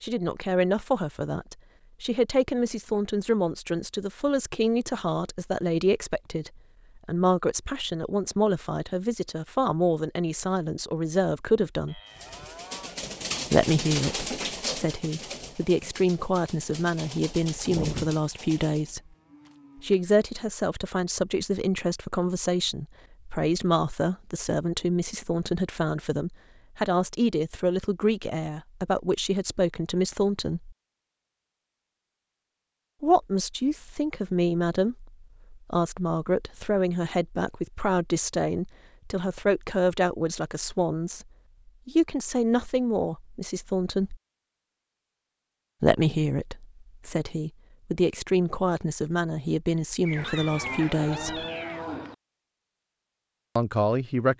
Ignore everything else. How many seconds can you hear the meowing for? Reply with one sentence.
You can hear the meowing for 2 seconds altogether.